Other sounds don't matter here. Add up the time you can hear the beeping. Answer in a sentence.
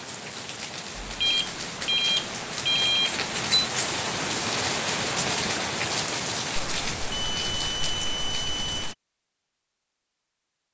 You can hear the beeping for 5 seconds altogether.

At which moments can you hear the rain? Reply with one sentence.
The rain can be heard from 0.0 to 8.9 s.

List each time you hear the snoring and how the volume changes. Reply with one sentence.
The snoring can't be heard in this clip.